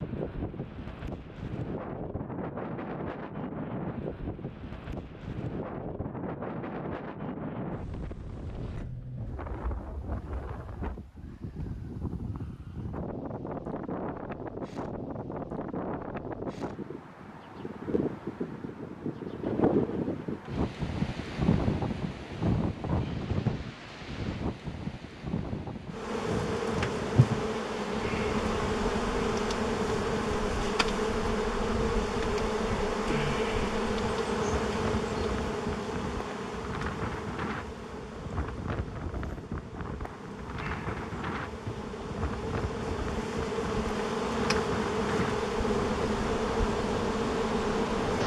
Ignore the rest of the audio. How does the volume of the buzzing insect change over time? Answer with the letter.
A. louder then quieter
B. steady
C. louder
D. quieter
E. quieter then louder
E.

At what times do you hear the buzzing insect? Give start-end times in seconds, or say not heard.
25.9-48.2.